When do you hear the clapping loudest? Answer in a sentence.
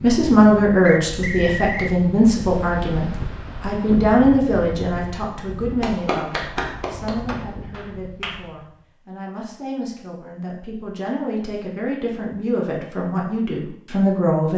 The volume of the clapping peaks at 6 seconds.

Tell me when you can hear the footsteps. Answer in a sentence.
The footsteps can't be heard in this clip.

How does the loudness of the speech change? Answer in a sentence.
The loudness of the speech goes down, then up.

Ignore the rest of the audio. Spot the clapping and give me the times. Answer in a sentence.
The clapping can be heard from 5.8 to 8.3 s.